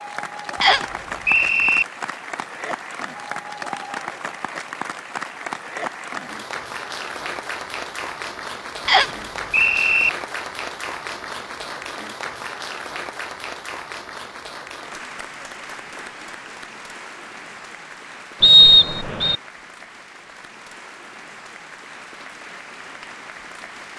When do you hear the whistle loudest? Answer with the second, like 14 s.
19 s.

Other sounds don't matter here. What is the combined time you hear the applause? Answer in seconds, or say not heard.
24 s.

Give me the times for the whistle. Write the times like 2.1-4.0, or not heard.
0.6-1.9, 8.8-10.1, 18.4-19.4.